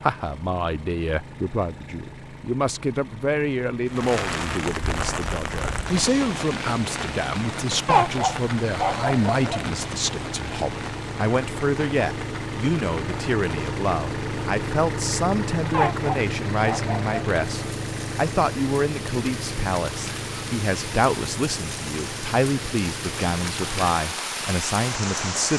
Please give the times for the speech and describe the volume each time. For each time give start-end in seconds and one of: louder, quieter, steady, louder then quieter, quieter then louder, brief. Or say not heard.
0.0-25.5 steady.